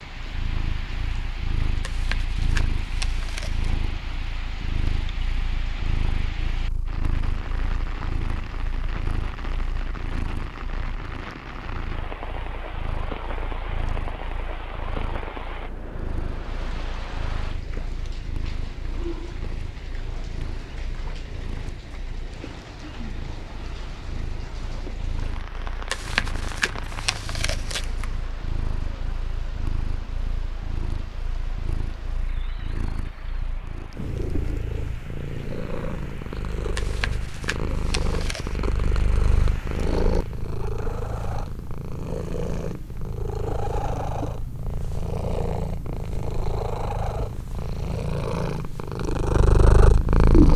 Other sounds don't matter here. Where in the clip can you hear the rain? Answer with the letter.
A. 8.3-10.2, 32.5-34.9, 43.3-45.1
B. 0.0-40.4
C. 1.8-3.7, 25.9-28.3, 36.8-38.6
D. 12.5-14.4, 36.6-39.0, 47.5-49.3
B.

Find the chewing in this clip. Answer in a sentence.
The chewing can be heard from 1.8 to 3.7 s, from 25.9 to 28.3 s and from 36.8 to 38.6 s.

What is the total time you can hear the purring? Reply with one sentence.
You can hear the purring for 50 seconds altogether.